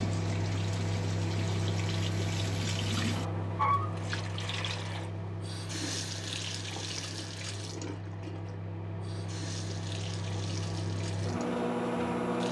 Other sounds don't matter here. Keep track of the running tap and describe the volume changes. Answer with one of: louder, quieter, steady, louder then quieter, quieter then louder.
louder then quieter.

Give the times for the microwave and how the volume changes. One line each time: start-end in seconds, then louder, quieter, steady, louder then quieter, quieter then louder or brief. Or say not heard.
0.0-12.4 quieter then louder.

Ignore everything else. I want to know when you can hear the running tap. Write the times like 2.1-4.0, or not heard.
0.0-12.4.